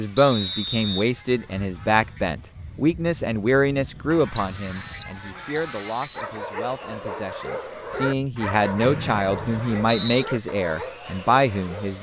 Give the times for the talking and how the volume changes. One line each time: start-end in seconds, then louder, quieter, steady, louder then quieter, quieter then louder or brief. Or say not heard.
0.0-11.9 quieter then louder.